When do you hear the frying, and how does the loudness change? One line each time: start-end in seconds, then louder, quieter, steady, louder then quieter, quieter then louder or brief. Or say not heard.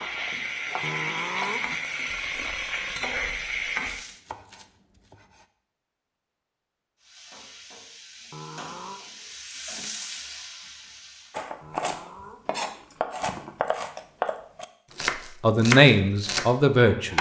0.0-4.2 steady
7.0-11.4 louder then quieter.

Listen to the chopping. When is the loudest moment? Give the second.
16 s.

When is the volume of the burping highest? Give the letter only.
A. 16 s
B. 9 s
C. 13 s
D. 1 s
D.